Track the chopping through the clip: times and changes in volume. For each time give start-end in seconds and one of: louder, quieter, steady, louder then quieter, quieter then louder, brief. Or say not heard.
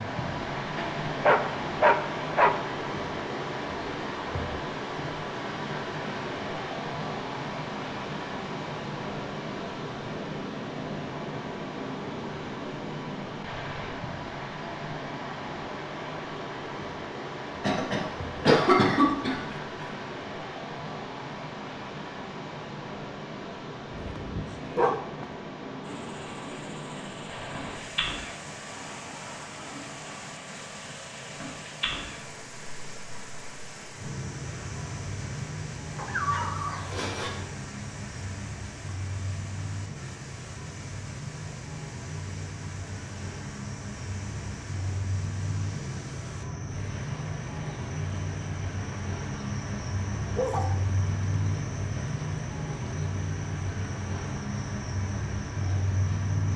not heard.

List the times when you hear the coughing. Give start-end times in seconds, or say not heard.
17.6-19.4.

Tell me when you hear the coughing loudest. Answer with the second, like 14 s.
19 s.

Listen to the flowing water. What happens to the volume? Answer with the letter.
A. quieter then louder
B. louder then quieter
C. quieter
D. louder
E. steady
C.